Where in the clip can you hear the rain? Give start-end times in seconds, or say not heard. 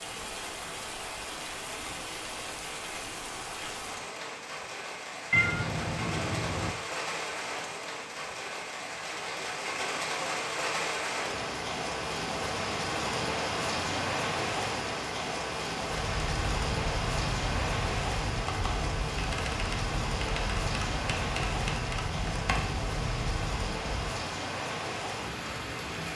0.0-26.1.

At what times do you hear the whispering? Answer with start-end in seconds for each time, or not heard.
not heard.